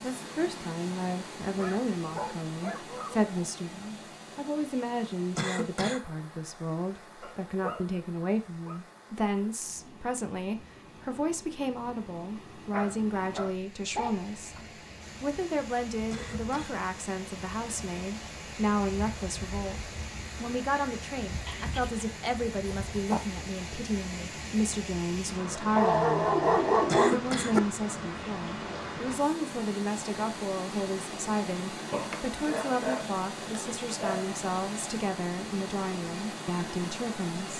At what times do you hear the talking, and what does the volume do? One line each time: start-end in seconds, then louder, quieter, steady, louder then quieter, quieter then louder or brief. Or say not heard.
0.0-14.6 steady
15.2-37.5 steady.